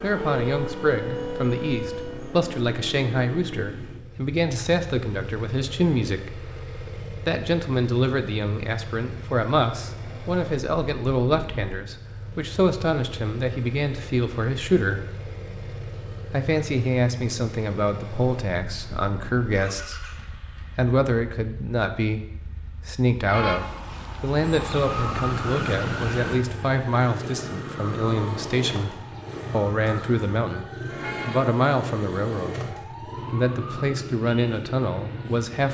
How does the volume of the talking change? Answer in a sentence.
The loudness of the talking stays about the same.